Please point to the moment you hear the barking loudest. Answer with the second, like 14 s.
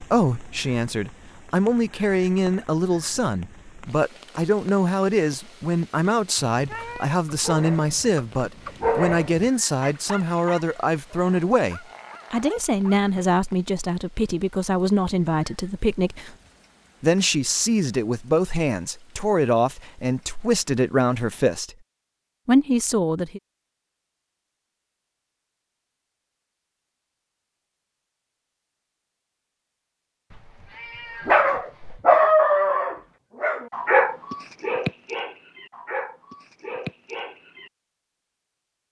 32 s.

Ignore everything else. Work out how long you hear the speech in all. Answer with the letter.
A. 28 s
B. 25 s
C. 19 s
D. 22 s
D.